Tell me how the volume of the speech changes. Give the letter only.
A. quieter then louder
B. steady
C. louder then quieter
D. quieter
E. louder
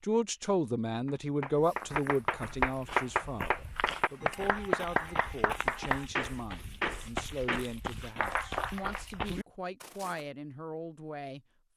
D.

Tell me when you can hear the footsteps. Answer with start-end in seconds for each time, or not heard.
1.4-10.2.